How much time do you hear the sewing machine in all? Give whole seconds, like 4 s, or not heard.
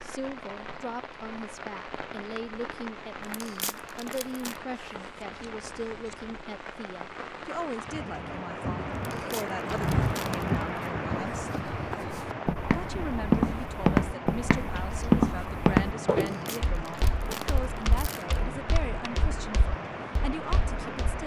not heard.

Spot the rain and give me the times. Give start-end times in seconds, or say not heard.
0.0-21.2.